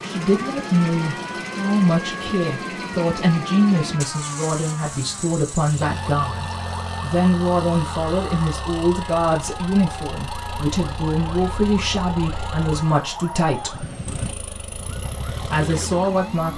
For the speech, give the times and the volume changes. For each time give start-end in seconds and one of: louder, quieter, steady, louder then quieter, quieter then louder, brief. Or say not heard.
0.0-13.8 steady
15.3-16.5 brief.